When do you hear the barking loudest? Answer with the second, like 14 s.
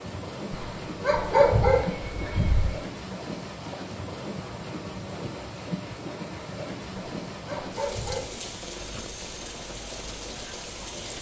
2 s.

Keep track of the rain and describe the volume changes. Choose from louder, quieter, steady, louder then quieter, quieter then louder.
steady.